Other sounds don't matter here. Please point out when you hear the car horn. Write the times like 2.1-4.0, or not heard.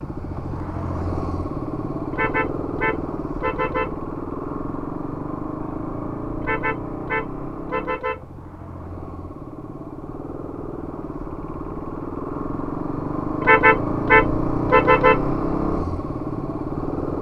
2.1-4.0, 6.4-8.2, 13.4-15.2.